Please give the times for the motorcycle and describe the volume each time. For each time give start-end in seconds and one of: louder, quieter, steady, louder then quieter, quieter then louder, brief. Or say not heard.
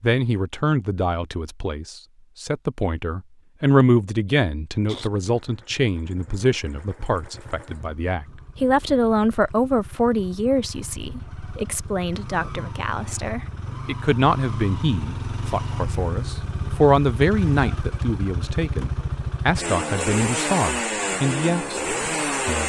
4.8-22.6 louder.